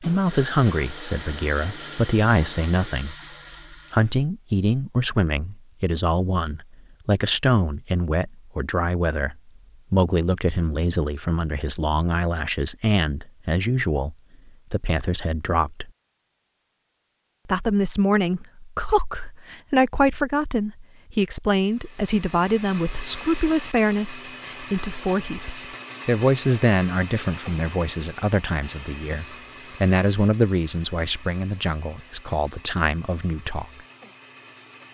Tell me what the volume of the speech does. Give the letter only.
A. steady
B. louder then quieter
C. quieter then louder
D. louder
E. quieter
A.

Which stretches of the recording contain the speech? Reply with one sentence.
You can hear the speech from 0.0 to 15.9 s and from 17.4 to 33.6 s.